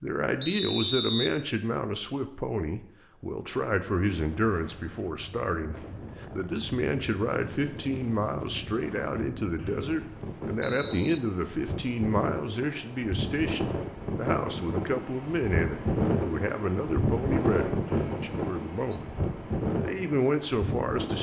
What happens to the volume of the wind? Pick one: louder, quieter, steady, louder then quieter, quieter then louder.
louder.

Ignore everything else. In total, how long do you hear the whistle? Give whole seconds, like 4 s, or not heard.
4 s.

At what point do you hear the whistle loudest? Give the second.
1 s.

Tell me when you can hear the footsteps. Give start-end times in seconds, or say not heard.
not heard.